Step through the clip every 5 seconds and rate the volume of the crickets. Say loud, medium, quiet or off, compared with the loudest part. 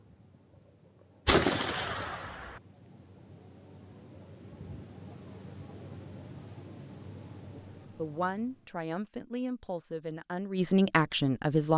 medium, loud, off.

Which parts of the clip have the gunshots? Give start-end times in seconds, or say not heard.
1.2-2.6.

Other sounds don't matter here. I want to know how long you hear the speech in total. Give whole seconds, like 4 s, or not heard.
4 s.